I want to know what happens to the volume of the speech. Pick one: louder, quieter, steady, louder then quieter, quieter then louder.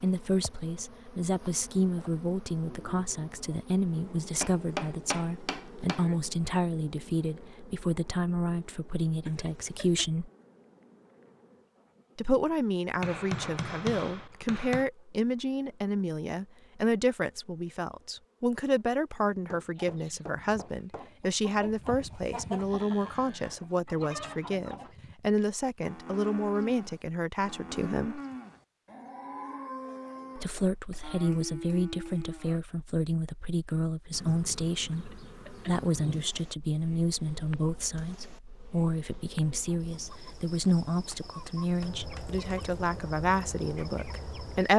steady.